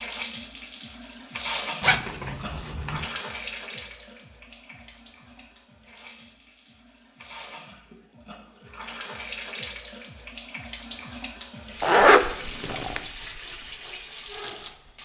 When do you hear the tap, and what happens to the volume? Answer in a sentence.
The tap can be heard from 0.0 to 14.9 s, getting quieter then louder.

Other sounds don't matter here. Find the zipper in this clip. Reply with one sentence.
The zipper can be heard from 1.8 to 3.0 s and from 11.8 to 13.0 s.